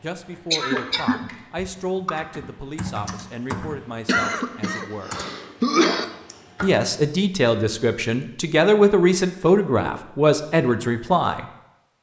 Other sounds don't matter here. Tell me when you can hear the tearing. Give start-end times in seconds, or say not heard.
not heard.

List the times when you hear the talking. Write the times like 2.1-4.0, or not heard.
0.0-5.2, 6.6-11.4.